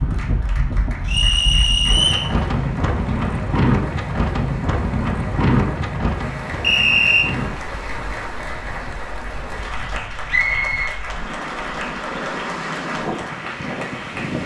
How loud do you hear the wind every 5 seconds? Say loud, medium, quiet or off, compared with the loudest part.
loud, loud, medium.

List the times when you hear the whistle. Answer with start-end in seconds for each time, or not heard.
1.1-2.3, 6.6-7.2, 10.2-10.9.